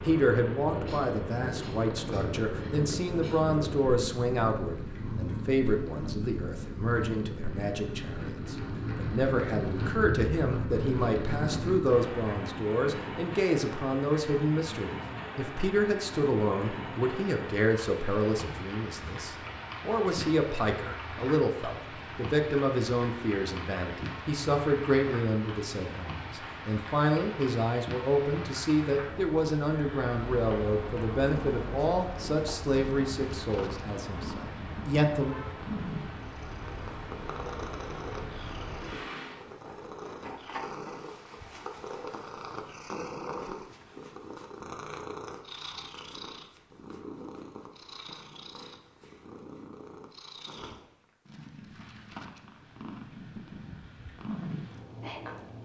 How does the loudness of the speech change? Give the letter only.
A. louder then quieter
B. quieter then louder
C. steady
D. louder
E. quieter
C.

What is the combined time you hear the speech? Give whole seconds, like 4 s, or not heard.
35 s.